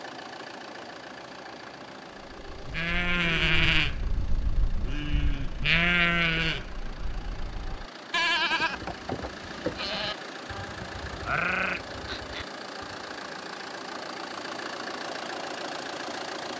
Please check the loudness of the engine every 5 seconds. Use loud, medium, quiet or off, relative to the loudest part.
medium, medium, loud, loud.